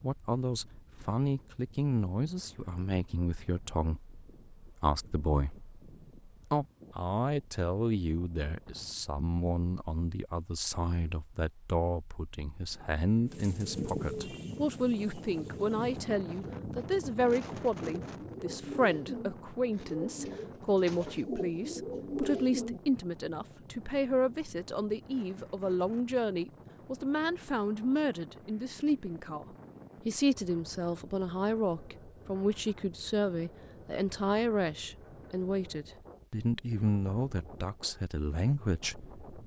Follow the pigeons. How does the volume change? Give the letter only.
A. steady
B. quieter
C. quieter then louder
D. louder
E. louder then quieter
C.